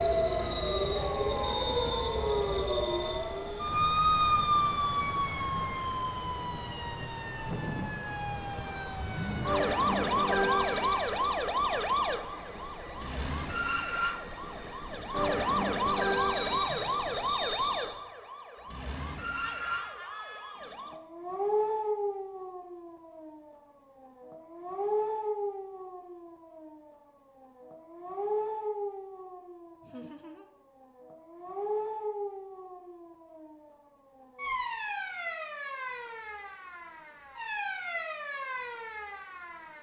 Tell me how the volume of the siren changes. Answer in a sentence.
The volume of the siren goes down.